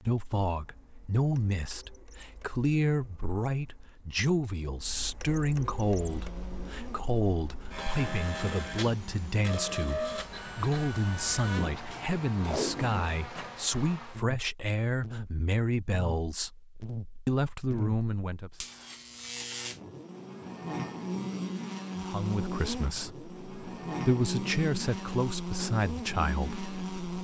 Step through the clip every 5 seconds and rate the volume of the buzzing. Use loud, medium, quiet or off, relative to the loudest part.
off, medium, medium, medium, loud, loud.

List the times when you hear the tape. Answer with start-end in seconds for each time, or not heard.
12.4-13.2.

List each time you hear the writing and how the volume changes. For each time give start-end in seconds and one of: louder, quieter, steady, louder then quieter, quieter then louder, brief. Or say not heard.
not heard.